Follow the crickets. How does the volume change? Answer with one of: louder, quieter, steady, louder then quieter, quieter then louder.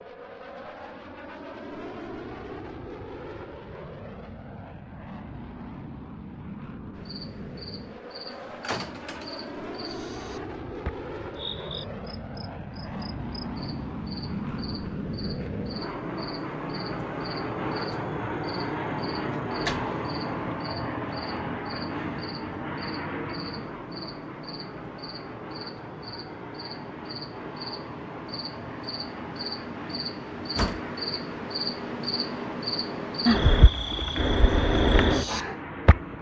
louder.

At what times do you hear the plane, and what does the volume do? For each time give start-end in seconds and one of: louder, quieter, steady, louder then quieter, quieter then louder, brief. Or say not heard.
0.0-36.1 louder then quieter.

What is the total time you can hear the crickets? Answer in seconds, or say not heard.
29 s.